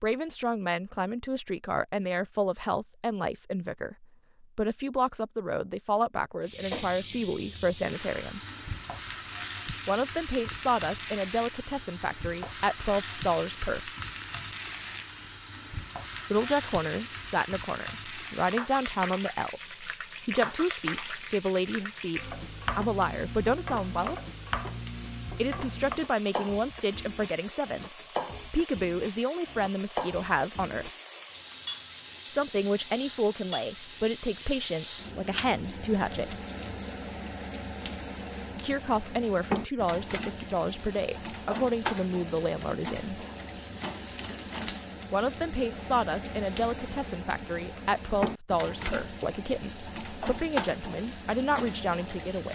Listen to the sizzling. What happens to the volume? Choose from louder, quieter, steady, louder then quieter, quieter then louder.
steady.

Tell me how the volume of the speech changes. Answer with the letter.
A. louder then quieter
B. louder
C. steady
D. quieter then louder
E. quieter
C.